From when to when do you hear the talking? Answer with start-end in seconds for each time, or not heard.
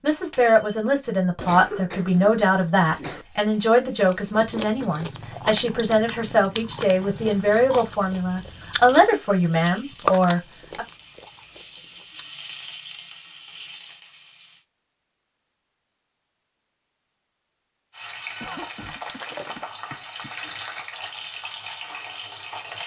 0.0-10.8.